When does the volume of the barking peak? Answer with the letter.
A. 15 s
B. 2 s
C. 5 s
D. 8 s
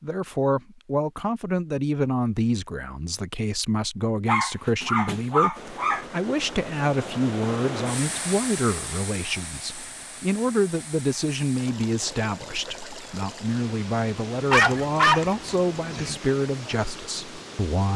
A.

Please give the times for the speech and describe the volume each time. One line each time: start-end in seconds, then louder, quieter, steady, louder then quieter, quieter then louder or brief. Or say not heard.
0.0-17.9 steady.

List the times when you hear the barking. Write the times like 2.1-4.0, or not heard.
4.2-6.0, 14.5-16.1.